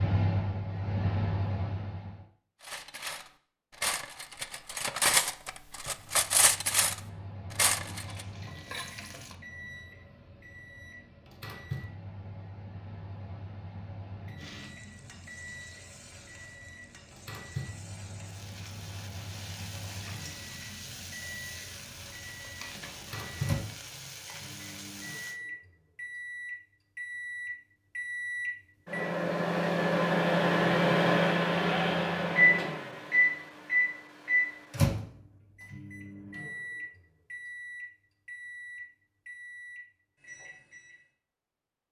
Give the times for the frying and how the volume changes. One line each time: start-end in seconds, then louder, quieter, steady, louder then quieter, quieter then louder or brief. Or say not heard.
7.8-9.3 brief
14.3-25.4 louder.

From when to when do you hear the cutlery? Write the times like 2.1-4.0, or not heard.
2.6-8.2.